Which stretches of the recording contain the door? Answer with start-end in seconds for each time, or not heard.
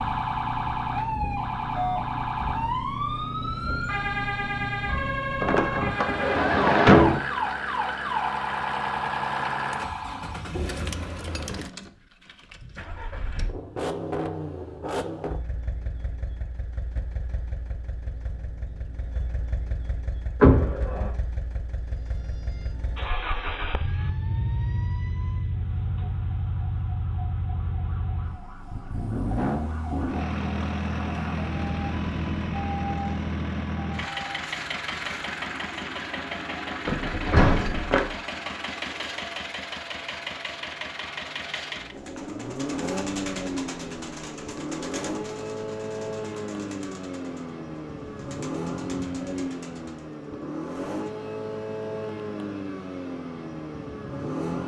5.4-7.2, 20.4-21.1, 36.9-38.1.